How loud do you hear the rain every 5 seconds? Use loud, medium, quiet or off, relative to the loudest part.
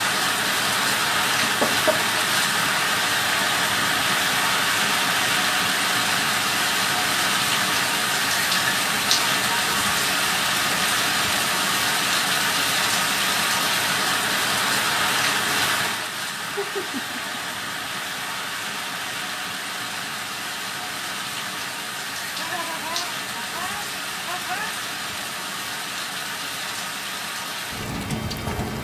loud, loud, loud, medium, medium, medium.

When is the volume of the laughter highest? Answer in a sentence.
The loudest moment of the laughter is at 2 seconds.